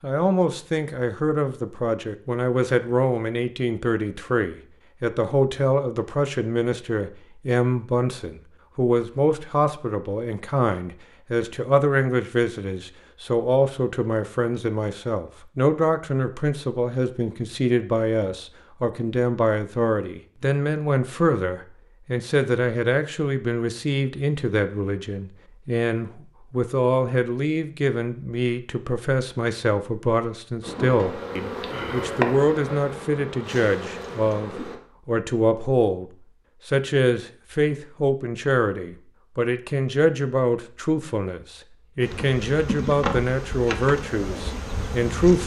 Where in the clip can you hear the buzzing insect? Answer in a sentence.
You can hear the buzzing insect from 30.6 to 34.8 s and from 42.0 to 45.4 s.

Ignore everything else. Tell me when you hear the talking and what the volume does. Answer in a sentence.
You can hear the talking from 0.0 to 45.4 s, at a steady volume.